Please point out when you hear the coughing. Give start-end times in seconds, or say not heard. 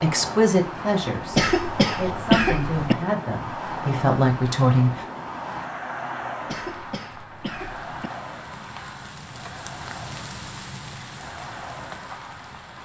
1.3-3.0, 6.5-8.1.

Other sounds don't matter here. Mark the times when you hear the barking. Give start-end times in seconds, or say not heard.
not heard.